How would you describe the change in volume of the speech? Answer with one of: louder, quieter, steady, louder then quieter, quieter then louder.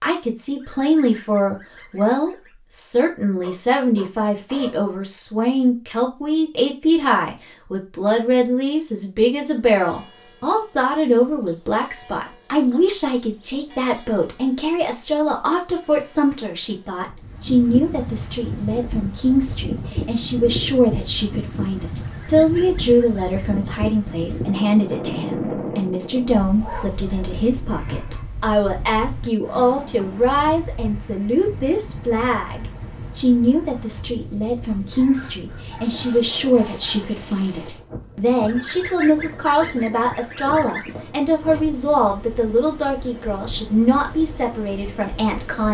steady.